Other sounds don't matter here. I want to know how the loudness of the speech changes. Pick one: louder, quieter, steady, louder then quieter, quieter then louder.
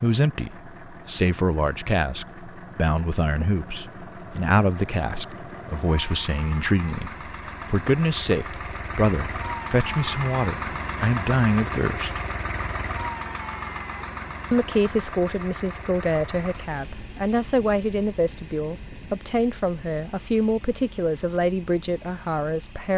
steady.